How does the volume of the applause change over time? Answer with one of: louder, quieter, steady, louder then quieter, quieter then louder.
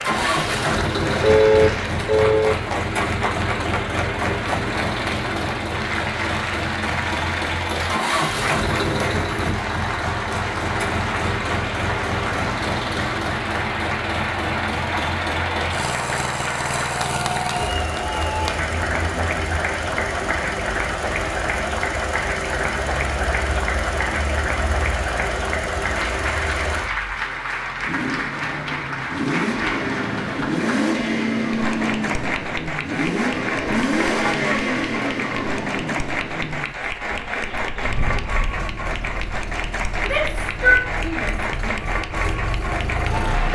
steady.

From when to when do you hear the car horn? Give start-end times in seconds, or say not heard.
1.2-2.5.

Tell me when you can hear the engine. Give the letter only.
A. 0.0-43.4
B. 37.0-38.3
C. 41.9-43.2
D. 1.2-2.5
A.